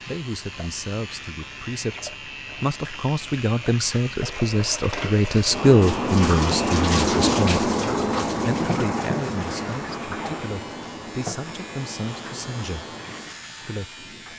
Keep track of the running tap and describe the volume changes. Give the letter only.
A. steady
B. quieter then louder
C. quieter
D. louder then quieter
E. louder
D.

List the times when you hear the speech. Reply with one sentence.
The speech can be heard from 0.0 to 7.5 s, from 8.4 to 12.9 s and from 13.7 to 14.1 s.